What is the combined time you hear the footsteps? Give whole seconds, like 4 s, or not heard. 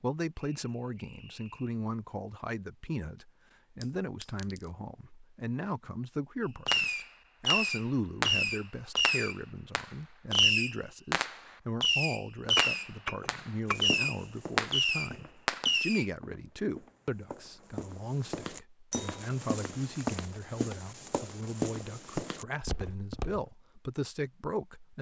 10 s.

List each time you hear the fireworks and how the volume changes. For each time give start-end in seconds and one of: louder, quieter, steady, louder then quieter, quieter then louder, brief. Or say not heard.
6.7-16.1 steady.